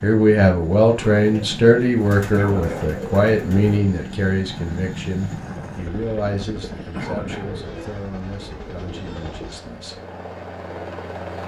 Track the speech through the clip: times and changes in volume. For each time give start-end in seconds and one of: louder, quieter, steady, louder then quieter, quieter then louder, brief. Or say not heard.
0.0-10.0 quieter.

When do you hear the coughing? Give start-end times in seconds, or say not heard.
2.3-3.0, 6.9-7.6.